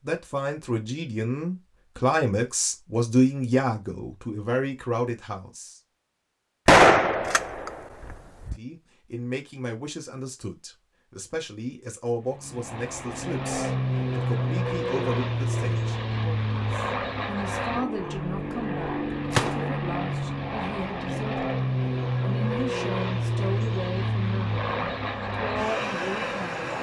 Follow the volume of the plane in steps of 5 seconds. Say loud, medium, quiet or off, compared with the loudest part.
off, off, loud, loud, loud, loud.